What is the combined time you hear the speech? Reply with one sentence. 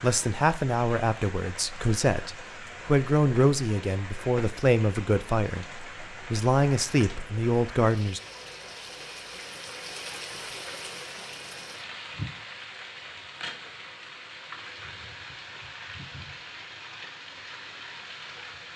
The speech can be heard for 8 seconds in total.